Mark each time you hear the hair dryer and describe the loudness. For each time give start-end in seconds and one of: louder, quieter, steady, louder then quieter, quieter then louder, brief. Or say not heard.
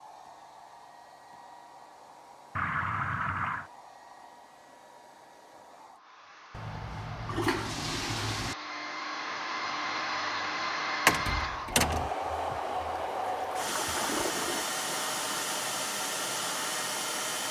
0.0-17.4 louder.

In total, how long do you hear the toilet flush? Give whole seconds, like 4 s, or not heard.
5 s.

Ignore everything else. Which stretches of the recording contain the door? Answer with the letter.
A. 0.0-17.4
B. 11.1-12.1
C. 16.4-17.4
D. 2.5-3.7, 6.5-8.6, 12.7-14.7
B.